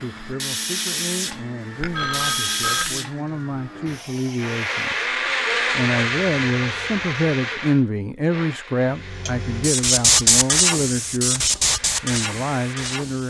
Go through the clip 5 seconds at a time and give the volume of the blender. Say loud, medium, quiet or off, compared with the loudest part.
medium, loud, medium.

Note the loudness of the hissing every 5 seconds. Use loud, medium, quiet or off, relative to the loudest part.
medium, medium, loud.